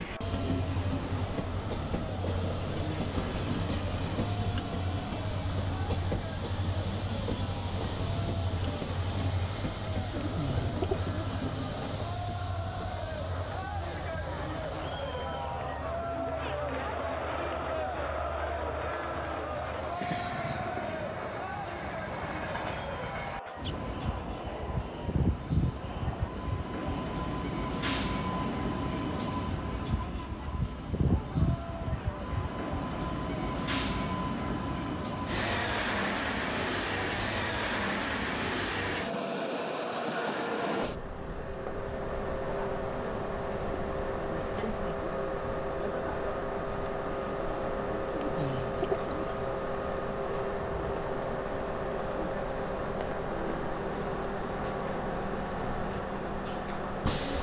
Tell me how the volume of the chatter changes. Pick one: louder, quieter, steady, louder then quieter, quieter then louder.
louder then quieter.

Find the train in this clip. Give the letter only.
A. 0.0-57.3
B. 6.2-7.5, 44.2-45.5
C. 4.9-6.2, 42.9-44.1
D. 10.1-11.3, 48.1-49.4
A.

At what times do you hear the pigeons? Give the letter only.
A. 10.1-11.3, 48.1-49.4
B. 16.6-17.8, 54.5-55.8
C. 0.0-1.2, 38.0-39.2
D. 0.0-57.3
A.